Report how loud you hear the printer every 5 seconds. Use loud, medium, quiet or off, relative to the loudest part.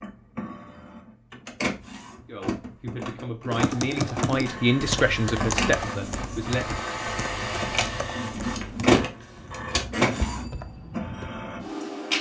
medium, loud, loud.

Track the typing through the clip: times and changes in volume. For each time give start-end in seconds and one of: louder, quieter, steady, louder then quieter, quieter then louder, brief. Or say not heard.
3.5-11.3 quieter.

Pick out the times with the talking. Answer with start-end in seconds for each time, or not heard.
2.2-6.8.